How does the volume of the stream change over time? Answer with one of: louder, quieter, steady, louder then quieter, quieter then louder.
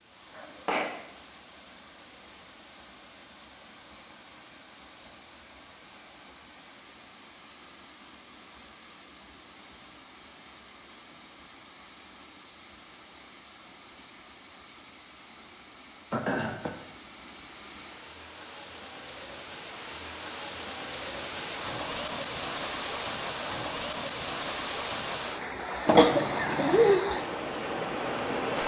louder.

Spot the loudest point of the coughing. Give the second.
26 s.